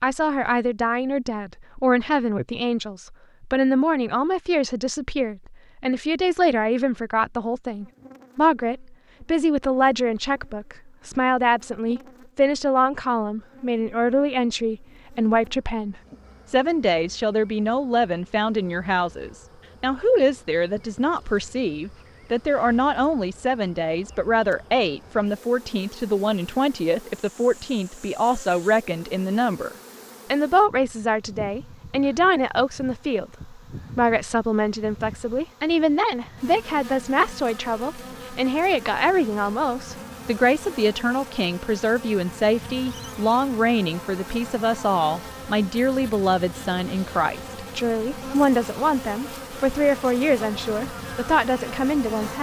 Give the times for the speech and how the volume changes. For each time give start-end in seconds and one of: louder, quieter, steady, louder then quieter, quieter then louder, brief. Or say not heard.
0.0-52.3 steady.